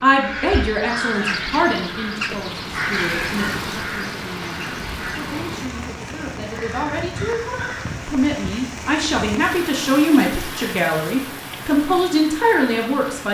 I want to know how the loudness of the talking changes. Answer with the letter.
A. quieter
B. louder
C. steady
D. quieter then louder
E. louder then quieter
D.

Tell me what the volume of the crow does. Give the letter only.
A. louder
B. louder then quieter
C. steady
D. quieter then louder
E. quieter
E.